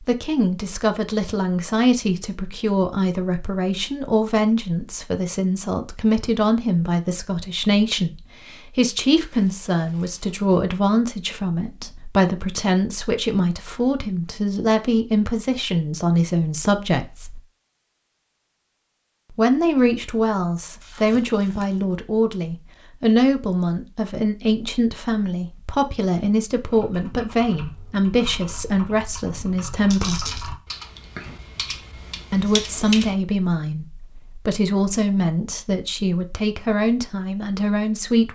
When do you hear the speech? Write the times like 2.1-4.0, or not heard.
0.0-17.4, 19.4-30.2, 32.3-38.3.